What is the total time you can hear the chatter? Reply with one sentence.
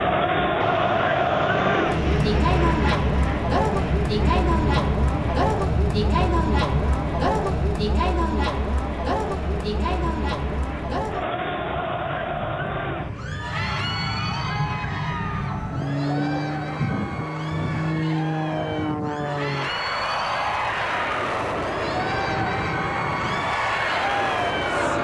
You can hear the chatter for 25 seconds altogether.